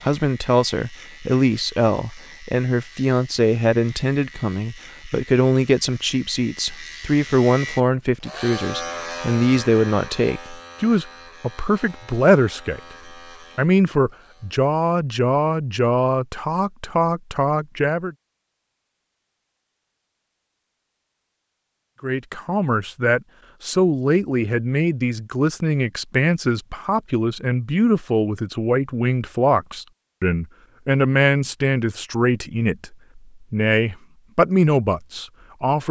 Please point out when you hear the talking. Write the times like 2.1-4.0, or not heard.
0.0-12.8, 13.6-18.1, 22.0-35.8.